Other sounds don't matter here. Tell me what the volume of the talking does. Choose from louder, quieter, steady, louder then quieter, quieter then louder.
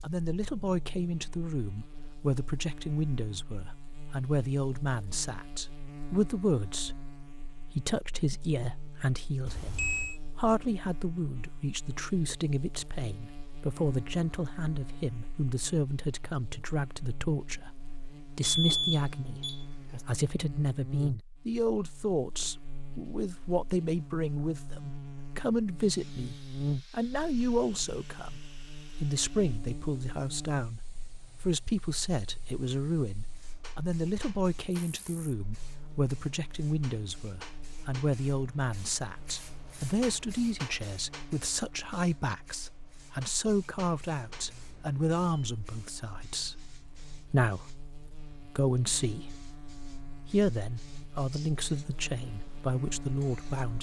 steady.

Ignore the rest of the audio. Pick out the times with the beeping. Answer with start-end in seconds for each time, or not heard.
9.4-10.2, 18.4-20.1, 44.2-45.6.